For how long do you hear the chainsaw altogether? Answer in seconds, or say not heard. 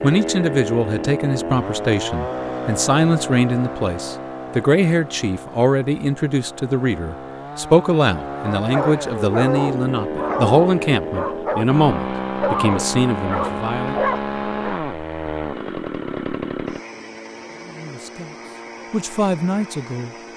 20 s.